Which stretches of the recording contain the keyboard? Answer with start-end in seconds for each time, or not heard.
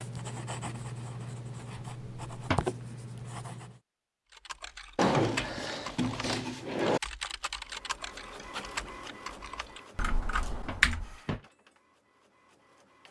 4.3-11.1.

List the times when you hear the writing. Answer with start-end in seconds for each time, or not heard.
0.0-3.8.